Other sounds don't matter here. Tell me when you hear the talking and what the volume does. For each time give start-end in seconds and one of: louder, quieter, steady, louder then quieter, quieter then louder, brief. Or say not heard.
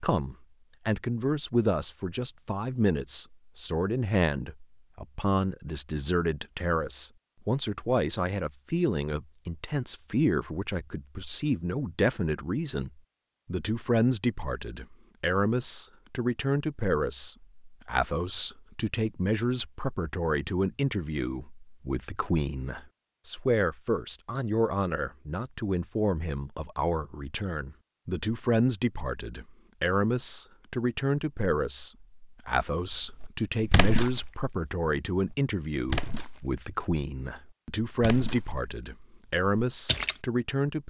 0.0-40.8 steady.